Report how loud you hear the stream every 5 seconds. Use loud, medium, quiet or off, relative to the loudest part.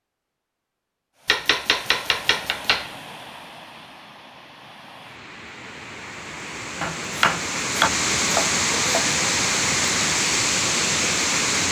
quiet, loud, loud.